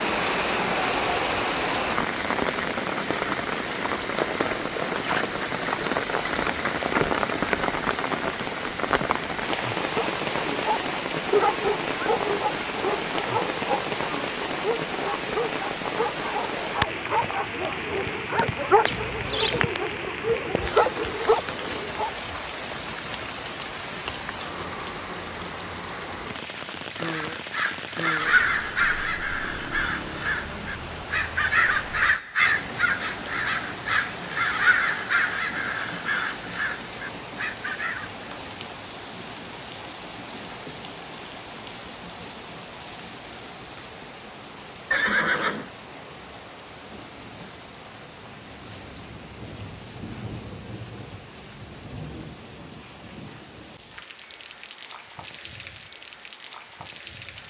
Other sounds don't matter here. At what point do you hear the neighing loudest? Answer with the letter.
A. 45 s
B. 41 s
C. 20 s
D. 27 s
A.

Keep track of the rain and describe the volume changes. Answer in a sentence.
The volume of the rain goes down.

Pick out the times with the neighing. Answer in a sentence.
The neighing can be heard from 18.9 to 19.6 s and from 44.9 to 45.7 s.